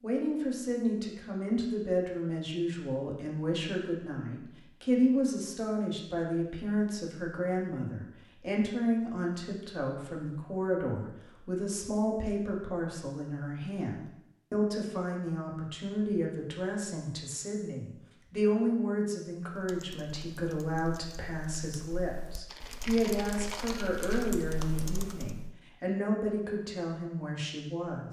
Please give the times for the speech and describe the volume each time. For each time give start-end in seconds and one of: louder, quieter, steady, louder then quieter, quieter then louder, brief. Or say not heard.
0.0-28.0 steady.